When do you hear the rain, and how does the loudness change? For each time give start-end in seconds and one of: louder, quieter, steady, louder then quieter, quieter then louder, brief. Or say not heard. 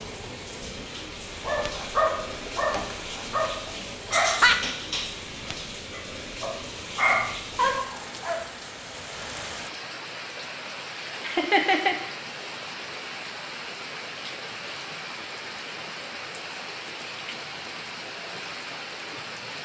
0.0-19.6 steady.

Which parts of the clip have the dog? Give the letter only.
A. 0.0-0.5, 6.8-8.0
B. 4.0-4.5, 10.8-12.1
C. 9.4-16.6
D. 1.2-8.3
D.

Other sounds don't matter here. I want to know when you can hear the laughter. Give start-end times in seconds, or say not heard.
4.0-4.5, 10.8-12.1.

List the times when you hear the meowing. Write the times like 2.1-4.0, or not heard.
not heard.